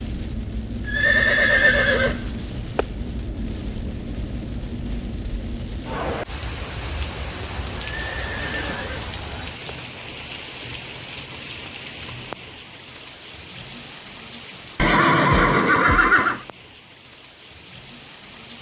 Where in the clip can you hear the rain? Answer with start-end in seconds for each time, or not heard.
0.0-18.5.